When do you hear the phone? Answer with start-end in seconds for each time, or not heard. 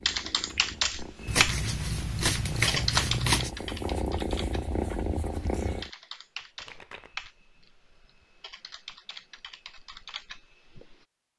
not heard.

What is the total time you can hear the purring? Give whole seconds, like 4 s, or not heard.
6 s.